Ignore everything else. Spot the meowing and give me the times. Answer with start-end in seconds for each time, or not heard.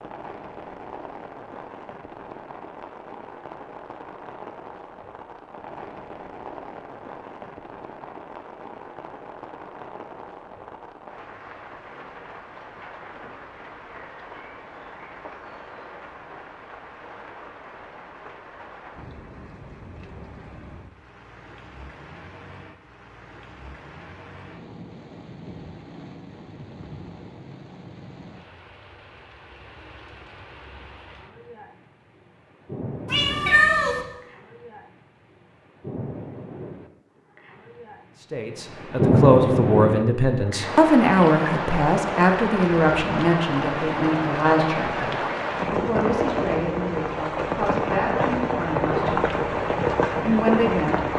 33.0-34.0.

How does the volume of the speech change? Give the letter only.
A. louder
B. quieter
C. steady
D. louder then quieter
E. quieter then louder
B.